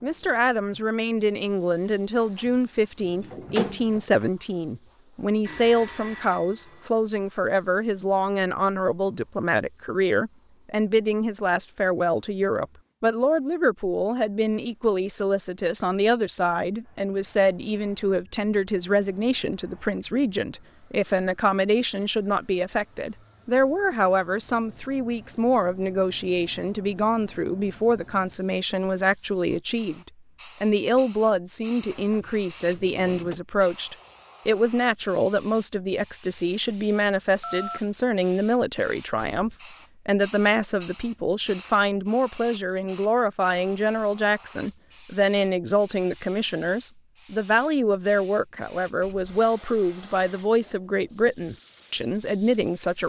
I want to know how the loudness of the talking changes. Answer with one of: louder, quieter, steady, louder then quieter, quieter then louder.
steady.